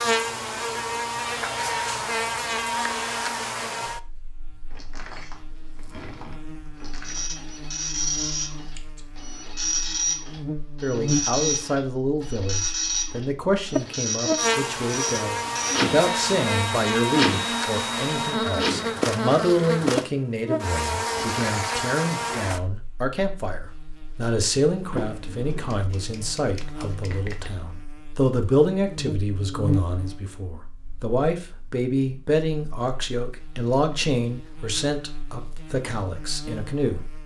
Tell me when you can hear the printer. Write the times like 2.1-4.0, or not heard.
7.0-19.0.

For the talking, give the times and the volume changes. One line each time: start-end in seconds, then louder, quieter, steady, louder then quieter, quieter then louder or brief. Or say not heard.
10.8-37.0 steady.